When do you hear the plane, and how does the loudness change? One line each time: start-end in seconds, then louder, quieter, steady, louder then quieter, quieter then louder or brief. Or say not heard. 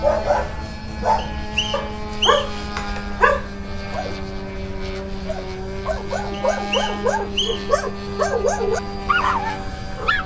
0.0-10.2 steady.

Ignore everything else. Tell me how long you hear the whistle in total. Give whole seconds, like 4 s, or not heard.
3 s.